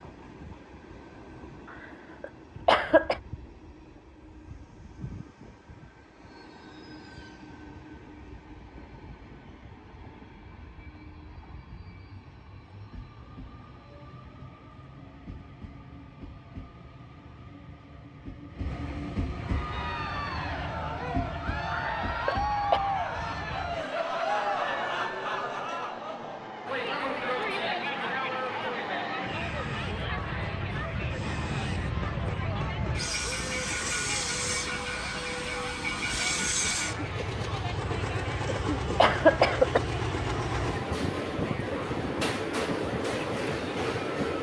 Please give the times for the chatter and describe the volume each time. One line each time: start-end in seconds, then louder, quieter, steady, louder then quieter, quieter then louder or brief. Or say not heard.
19.4-44.3 quieter.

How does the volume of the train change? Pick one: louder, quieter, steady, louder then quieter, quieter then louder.
louder.